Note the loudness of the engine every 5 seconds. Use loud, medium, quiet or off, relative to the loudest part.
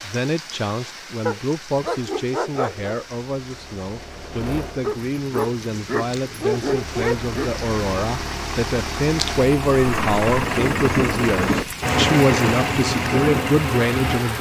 quiet, medium, loud.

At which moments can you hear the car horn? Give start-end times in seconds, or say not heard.
not heard.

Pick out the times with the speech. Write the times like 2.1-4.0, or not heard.
0.0-14.3.